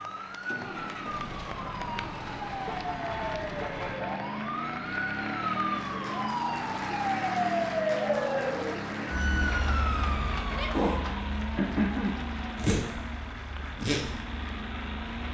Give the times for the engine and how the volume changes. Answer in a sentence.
The engine can be heard from 0.0 to 15.3 s, at a steady volume.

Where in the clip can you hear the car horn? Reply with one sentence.
The car horn can be heard from 2.6 to 4.2 s.